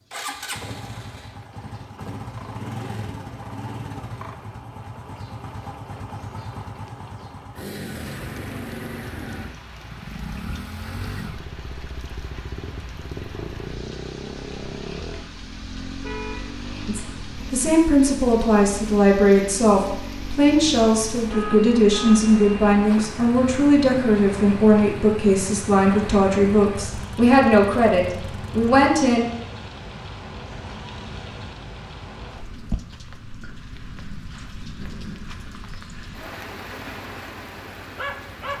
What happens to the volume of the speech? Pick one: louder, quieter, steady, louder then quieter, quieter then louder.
steady.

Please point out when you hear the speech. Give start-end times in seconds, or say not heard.
16.9-29.2.